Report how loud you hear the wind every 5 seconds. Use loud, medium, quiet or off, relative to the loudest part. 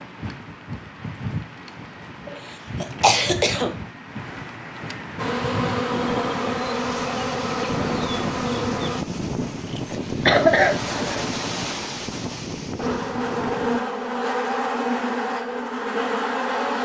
medium, loud, loud, off.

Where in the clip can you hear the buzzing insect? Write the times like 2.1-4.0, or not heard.
5.2-9.1, 12.8-16.8.